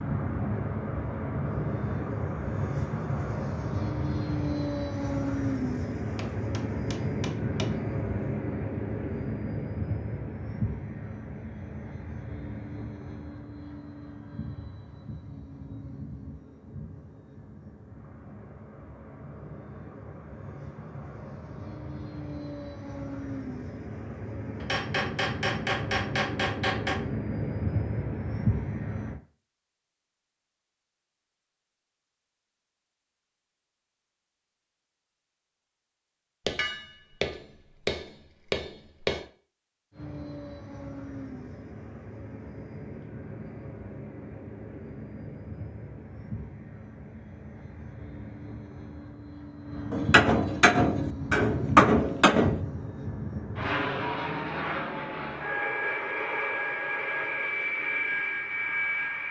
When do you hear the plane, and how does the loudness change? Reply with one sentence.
The plane can be heard from 0.0 to 29.2 s, getting quieter then louder; and from 39.9 to 59.2 s, getting louder.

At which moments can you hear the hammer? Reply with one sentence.
The hammer can be heard from 6.2 to 7.8 s, from 24.6 to 27.0 s, from 36.5 to 39.2 s and from 49.9 to 52.6 s.